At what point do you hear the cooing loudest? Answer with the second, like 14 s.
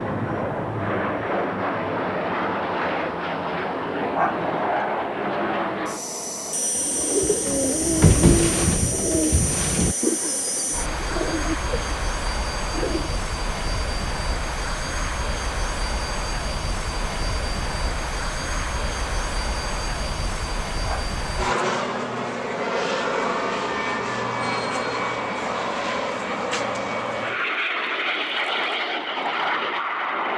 8 s.